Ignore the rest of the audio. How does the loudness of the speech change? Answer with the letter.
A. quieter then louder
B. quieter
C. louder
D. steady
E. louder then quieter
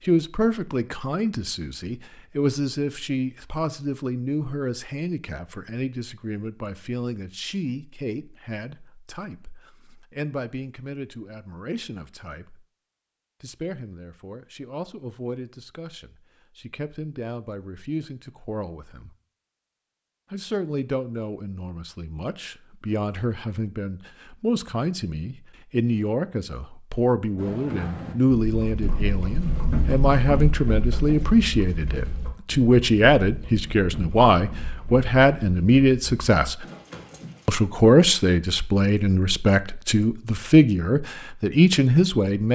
A.